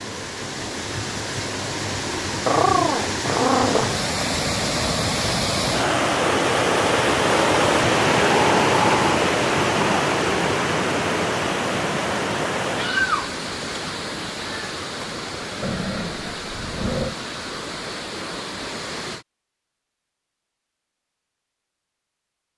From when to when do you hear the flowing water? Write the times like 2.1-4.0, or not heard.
0.0-19.2.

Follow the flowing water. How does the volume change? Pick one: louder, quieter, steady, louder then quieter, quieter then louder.
louder then quieter.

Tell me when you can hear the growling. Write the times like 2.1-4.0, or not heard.
2.5-4.0, 8.3-10.2, 15.6-17.1.